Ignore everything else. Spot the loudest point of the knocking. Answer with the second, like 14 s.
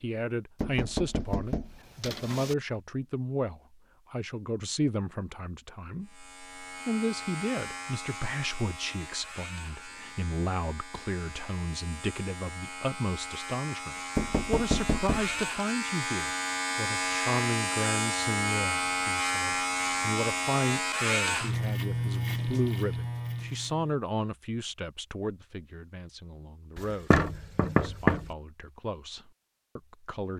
28 s.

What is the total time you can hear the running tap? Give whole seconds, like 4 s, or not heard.
not heard.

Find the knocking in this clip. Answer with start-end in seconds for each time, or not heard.
0.6-2.5, 14.2-15.4, 27.1-28.2.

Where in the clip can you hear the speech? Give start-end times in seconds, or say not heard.
0.0-30.3.